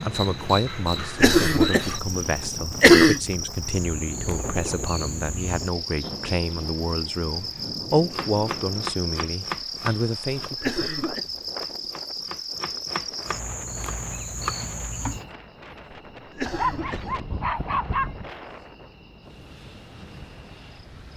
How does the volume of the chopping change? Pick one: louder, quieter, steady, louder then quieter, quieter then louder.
quieter then louder.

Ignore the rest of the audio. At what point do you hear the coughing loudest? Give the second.
3 s.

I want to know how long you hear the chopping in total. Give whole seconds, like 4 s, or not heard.
7 s.